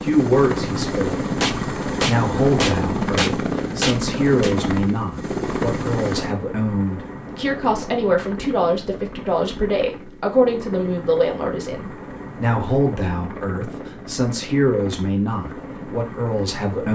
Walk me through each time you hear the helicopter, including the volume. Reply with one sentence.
You can hear the helicopter from 0.0 to 16.8 s, getting quieter.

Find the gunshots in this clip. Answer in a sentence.
You can hear the gunshots from 1.4 to 4.5 s.